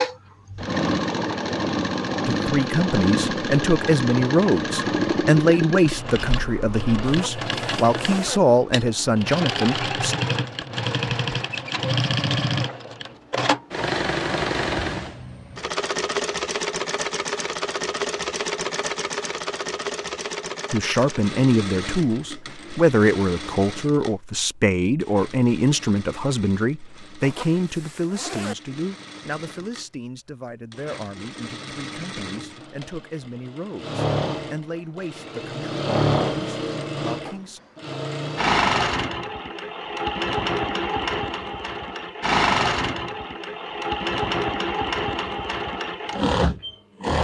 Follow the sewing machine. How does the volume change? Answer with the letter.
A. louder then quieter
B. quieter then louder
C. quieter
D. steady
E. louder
B.